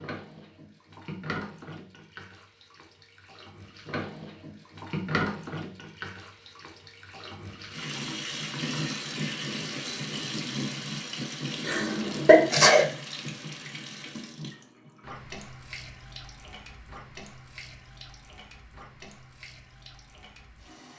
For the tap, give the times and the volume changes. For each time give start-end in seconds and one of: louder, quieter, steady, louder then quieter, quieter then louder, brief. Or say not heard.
0.0-20.9 louder then quieter.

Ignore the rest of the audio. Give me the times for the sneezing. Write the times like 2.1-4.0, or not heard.
11.7-12.8.